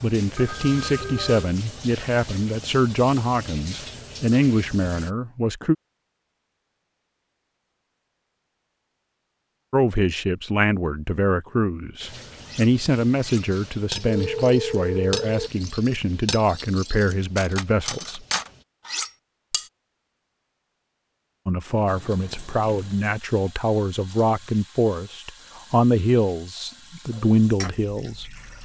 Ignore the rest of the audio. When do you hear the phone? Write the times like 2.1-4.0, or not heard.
0.3-1.5, 13.9-15.5, 21.6-23.1.